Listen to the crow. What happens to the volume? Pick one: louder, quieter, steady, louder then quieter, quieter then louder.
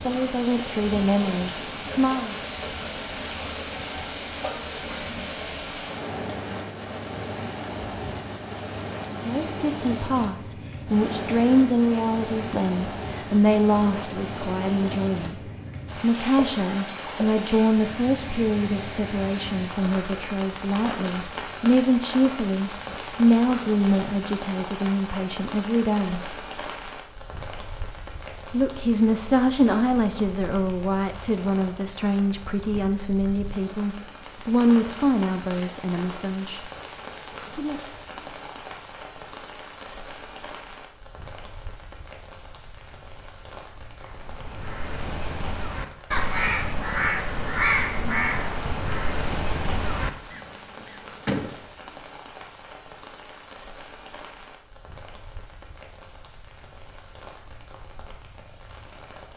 louder then quieter.